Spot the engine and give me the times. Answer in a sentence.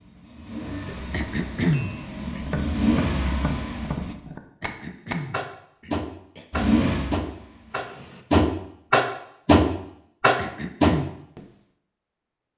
You can hear the engine from 0.0 to 4.2 s and from 6.5 to 8.2 s.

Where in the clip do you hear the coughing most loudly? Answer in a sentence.
The volume of the coughing peaks at 2 seconds.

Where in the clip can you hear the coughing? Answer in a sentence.
You can hear the coughing from 1.1 to 2.5 s, from 4.6 to 6.5 s and from 10.3 to 11.1 s.